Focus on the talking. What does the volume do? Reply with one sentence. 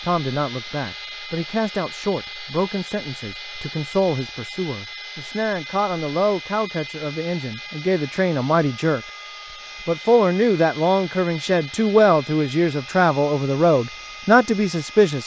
The volume of the talking goes up.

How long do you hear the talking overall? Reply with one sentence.
You can hear the talking for 14 seconds altogether.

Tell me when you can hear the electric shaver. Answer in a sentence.
You can't hear the electric shaver here.